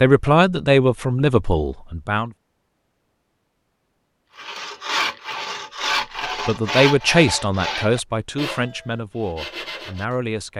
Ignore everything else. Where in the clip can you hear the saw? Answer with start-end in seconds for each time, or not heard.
4.3-10.2.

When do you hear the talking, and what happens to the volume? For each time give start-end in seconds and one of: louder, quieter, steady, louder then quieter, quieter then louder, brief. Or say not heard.
0.0-2.3 brief
6.2-10.5 quieter.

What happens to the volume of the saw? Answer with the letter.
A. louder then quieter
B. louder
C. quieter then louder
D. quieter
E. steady
D.